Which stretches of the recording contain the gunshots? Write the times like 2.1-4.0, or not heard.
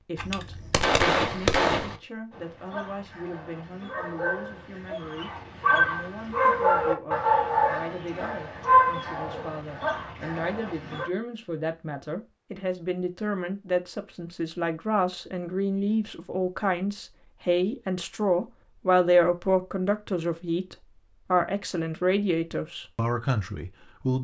0.1-1.9.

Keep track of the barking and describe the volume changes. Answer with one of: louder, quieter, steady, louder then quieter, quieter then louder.
louder then quieter.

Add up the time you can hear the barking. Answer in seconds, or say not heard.
9 s.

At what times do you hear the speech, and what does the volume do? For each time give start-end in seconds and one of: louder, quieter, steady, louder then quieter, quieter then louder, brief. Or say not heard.
0.0-24.1 louder.